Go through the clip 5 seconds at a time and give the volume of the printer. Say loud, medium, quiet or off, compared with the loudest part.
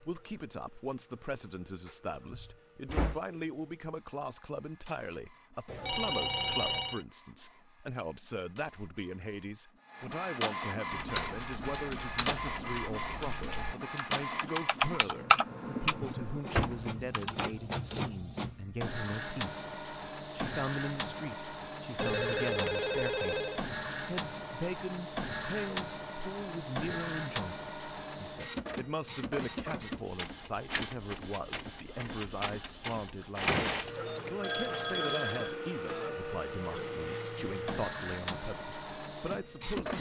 quiet, quiet, loud, loud, loud, loud, loud, loud.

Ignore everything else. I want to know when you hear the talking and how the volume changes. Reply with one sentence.
You can hear the talking from 0.0 to 39.9 s, at a steady volume.